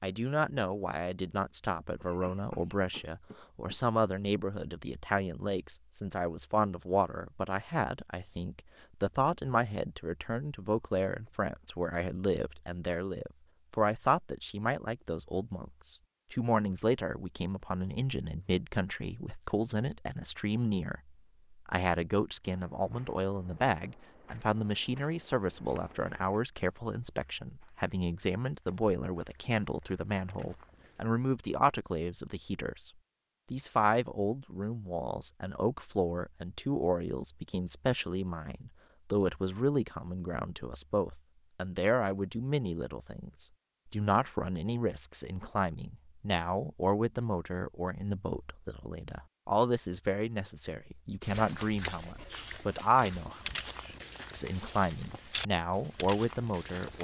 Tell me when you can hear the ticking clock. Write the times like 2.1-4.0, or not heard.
not heard.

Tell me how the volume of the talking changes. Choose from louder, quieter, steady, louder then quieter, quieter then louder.
steady.